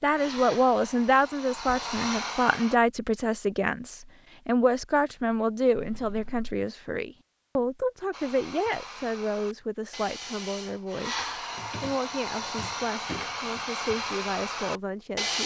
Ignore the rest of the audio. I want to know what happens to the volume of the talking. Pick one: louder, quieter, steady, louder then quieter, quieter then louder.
quieter.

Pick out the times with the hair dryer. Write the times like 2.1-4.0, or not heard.
0.1-2.8, 8.1-15.4.